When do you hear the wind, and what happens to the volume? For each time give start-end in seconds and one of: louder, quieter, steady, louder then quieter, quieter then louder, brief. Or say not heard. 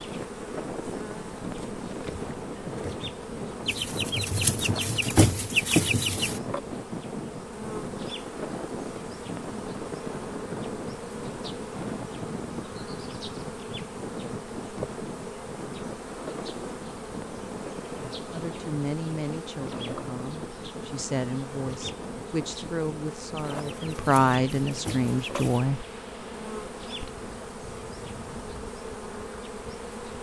0.0-30.1 quieter.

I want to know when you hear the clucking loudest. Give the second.
6 s.